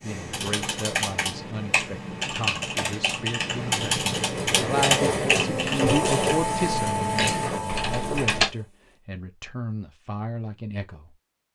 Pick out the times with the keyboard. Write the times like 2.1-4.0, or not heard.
0.0-8.5.